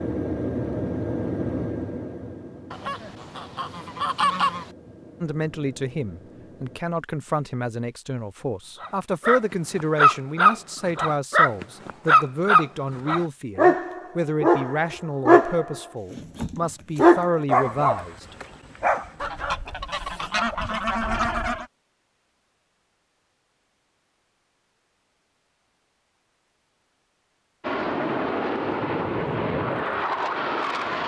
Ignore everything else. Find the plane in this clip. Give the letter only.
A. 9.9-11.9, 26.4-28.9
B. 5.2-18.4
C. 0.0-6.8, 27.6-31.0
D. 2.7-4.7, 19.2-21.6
C.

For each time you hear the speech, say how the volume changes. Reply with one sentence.
The speech can be heard from 5.2 to 18.4 s, at a steady volume.